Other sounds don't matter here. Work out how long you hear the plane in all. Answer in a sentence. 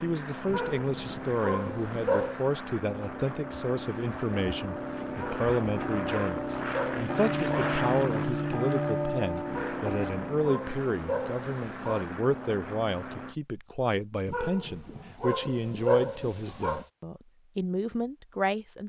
The plane can be heard for 13 seconds in total.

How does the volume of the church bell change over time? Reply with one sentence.
The loudness of the church bell goes up.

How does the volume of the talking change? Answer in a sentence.
The loudness of the talking stays about the same.